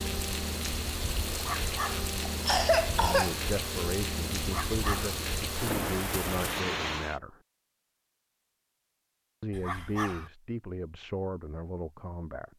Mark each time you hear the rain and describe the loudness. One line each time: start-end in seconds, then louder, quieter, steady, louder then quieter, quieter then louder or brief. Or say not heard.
0.0-7.2 steady.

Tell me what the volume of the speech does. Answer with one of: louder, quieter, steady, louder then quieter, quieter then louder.
steady.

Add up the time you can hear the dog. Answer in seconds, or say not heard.
2 s.